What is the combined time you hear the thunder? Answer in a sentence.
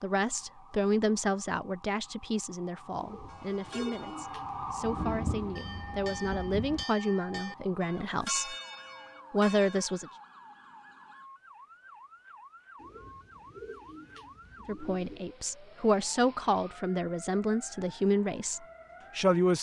You can hear the thunder for 2 seconds altogether.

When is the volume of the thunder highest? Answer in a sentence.
The volume of the thunder peaks at 5 seconds.